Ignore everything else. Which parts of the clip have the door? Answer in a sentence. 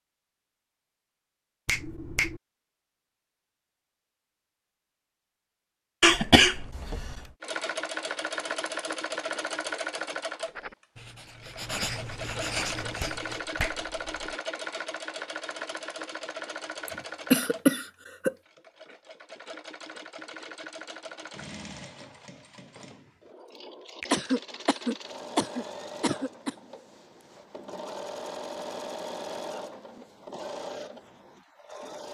The door can't be heard in this clip.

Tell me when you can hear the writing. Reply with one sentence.
You can hear the writing from 10.4 to 13.4 s.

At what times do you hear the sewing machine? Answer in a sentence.
You can hear the sewing machine from 7.4 to 32.0 s.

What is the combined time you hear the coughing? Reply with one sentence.
The coughing can be heard for 5 seconds in total.